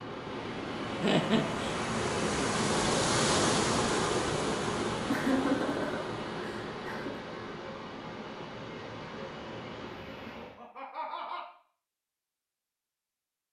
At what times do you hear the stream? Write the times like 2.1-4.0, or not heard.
0.0-10.6.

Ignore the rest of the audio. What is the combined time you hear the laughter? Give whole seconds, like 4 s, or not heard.
4 s.